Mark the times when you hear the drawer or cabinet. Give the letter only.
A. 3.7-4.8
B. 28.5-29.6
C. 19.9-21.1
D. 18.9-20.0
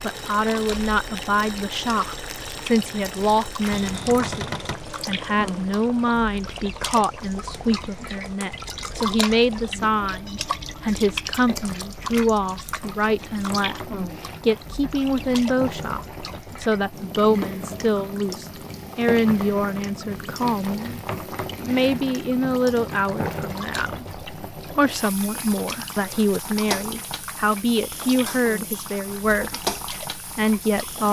A.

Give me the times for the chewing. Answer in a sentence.
The chewing can't be heard in this clip.